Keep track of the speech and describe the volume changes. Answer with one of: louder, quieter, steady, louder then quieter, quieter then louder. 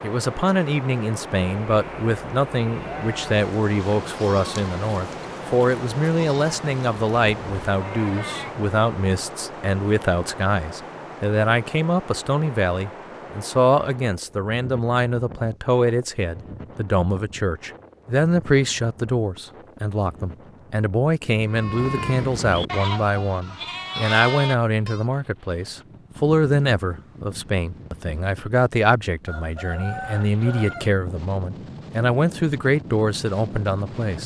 steady.